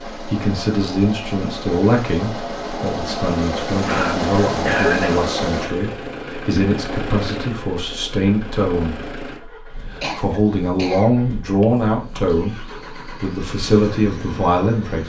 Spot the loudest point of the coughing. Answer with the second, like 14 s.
5 s.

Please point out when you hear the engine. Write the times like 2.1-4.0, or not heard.
0.0-15.0.